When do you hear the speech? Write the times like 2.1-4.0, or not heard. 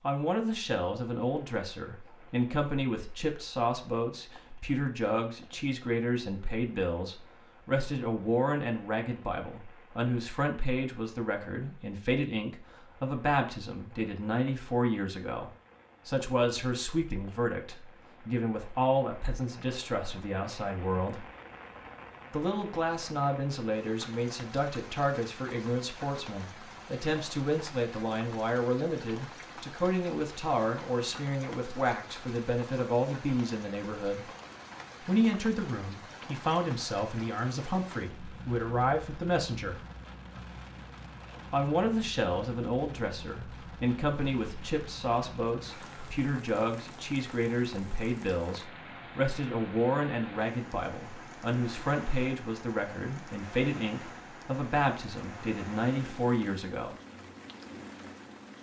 0.0-21.2, 22.3-34.2, 35.0-39.8, 41.5-57.0.